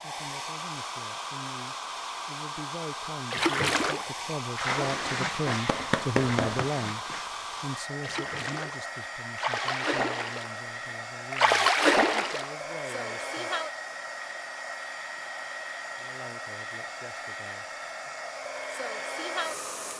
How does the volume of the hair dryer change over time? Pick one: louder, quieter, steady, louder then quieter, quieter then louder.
steady.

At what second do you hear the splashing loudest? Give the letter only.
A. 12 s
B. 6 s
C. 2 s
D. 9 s
A.